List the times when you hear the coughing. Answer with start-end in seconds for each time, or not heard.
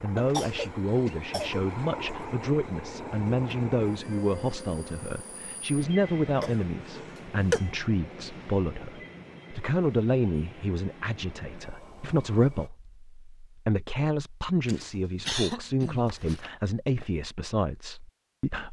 0.1-1.6, 6.3-7.7, 14.7-16.5.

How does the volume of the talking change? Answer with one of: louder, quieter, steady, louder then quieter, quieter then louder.
steady.